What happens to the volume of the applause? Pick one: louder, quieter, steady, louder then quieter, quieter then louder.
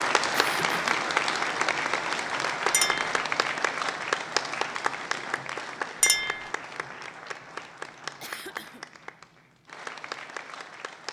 quieter.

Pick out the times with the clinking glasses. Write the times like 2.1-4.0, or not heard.
2.7-3.1, 6.0-6.5.